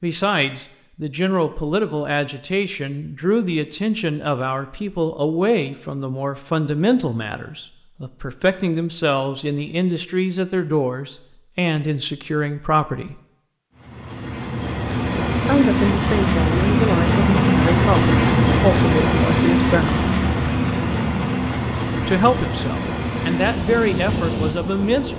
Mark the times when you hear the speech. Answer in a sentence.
The speech can be heard from 0.0 to 13.2 s, from 15.4 to 20.1 s and from 22.0 to 25.1 s.